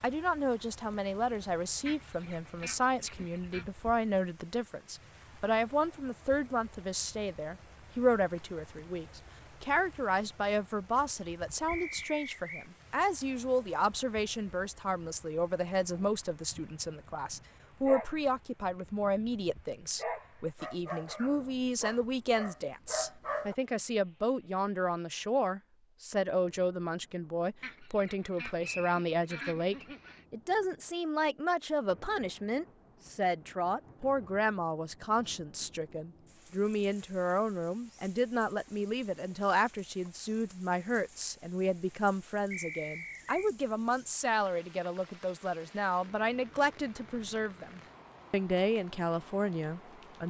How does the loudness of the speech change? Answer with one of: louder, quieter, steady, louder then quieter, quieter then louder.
steady.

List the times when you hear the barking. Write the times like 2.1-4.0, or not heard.
15.9-23.6.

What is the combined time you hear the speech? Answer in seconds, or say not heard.
50 s.